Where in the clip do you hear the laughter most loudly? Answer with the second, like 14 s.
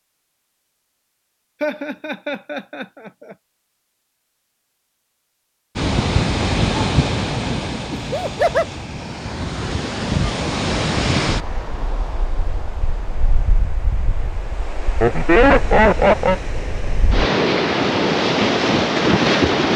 15 s.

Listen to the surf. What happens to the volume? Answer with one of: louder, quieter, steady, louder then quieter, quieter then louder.
quieter then louder.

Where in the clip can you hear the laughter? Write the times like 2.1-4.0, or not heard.
1.6-3.4, 7.9-8.7, 15.0-16.4.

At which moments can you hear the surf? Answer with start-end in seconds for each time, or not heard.
5.8-19.7.